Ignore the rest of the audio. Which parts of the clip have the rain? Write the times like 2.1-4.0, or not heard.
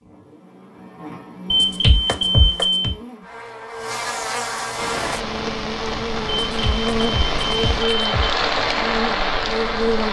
4.7-10.0.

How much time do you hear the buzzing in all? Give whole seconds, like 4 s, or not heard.
10 s.